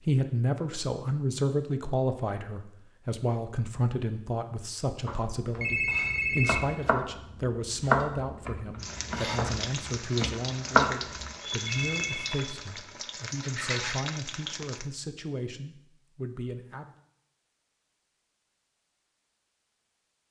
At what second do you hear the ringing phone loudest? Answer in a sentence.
The loudest moment of the ringing phone is at 6 seconds.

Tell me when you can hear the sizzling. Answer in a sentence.
You can hear the sizzling from 8.8 to 14.8 s.